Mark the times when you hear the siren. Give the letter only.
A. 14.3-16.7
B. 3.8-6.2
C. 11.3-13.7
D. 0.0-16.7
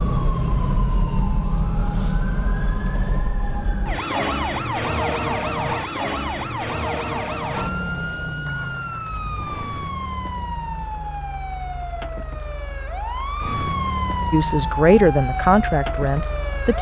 D.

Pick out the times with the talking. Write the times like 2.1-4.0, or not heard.
14.3-16.7.